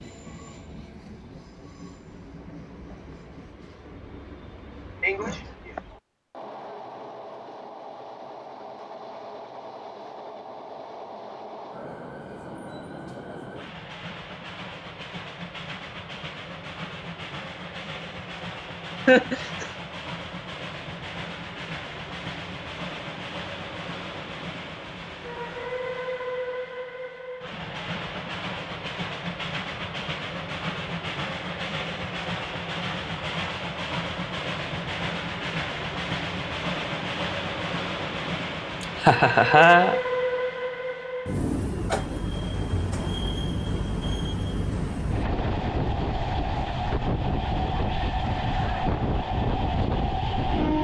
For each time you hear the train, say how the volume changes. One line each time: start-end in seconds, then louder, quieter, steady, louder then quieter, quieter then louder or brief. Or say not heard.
0.0-50.7 louder.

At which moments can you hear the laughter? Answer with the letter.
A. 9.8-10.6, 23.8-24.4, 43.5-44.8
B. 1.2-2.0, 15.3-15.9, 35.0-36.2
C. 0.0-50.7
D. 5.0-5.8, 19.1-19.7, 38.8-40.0
D.